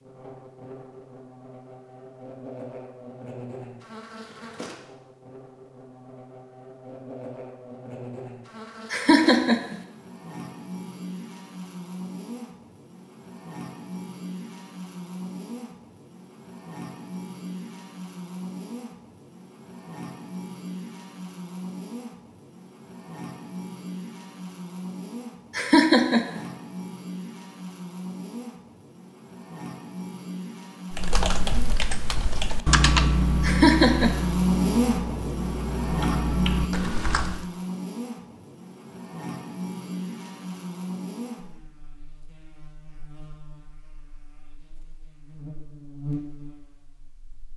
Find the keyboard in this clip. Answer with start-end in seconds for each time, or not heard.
30.9-37.5.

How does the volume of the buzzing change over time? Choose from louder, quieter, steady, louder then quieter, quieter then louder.
louder then quieter.